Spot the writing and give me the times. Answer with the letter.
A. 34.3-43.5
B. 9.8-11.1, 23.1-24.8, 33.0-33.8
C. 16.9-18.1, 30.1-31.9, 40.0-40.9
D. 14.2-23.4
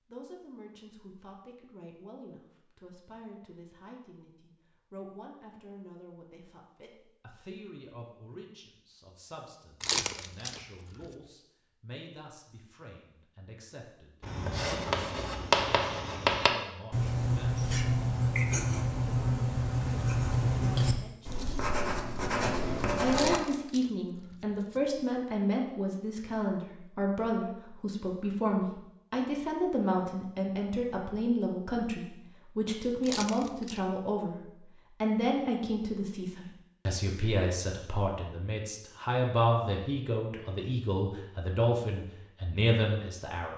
D.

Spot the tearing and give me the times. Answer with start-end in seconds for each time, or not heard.
9.8-11.1, 23.1-24.8, 33.0-33.8.